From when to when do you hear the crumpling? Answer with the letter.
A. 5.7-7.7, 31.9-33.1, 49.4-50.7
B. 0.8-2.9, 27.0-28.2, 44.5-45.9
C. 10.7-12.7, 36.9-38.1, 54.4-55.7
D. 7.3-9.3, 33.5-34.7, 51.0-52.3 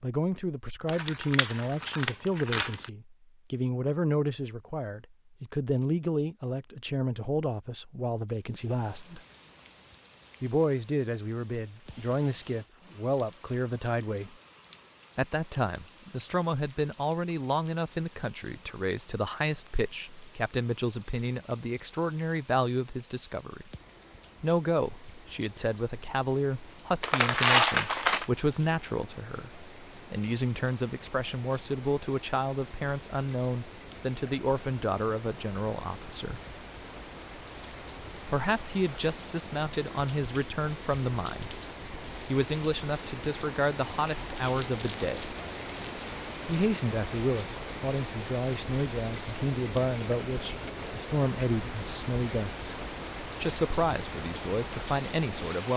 B.